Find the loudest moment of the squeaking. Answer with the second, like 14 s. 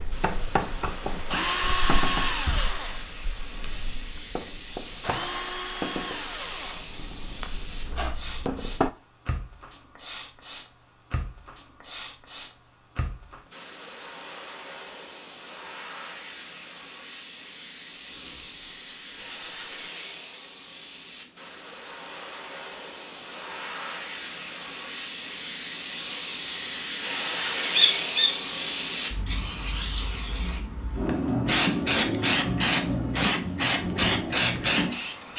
28 s.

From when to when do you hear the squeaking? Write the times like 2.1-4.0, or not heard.
7.8-8.3, 18.0-19.9, 27.8-28.4.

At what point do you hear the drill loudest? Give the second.
2 s.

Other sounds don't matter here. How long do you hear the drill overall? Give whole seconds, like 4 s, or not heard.
9 s.